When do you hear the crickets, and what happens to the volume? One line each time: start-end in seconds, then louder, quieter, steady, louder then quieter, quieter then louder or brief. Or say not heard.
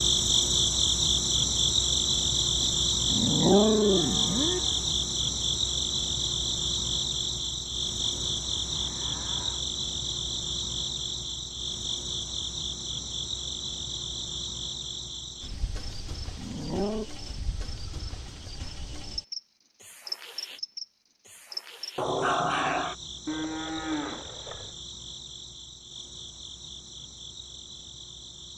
0.0-28.5 quieter.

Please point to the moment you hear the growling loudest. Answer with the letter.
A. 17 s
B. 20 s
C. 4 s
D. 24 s
C.